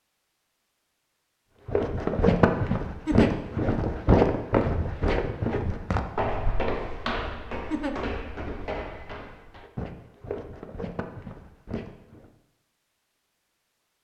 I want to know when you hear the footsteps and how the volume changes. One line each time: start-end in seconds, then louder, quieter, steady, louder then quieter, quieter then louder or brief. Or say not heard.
1.6-12.3 quieter.